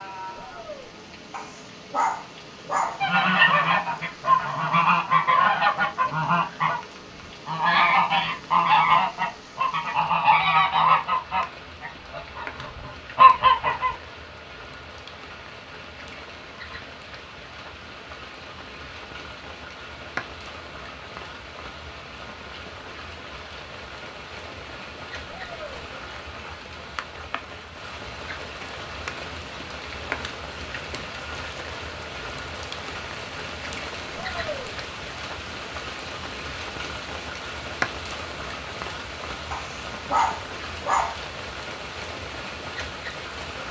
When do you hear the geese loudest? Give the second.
13 s.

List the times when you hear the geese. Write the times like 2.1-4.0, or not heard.
3.0-6.8, 7.5-13.9.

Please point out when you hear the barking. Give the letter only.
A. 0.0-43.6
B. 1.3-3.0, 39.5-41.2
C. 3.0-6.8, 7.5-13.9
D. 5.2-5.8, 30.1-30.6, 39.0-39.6
B.